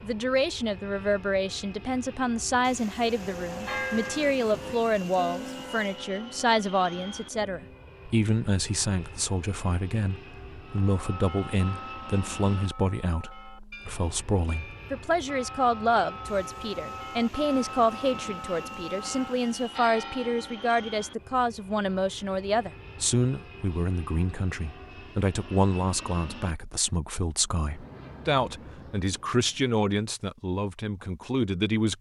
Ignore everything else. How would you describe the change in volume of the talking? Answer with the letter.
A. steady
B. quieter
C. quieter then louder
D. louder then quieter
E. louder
A.